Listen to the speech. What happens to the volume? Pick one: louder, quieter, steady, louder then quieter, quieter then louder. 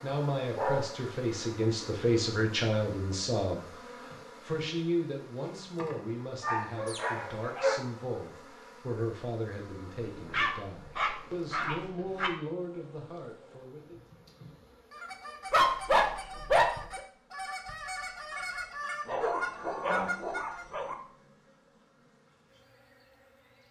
quieter.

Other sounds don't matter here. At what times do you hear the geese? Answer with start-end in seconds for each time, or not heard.
14.9-20.6.